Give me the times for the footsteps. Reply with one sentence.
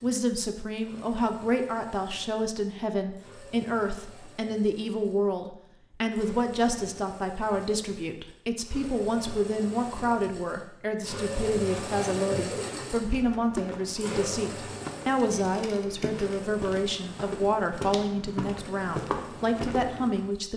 You can hear the footsteps from 12.7 to 20.3 s.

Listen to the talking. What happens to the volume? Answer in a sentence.
The loudness of the talking stays about the same.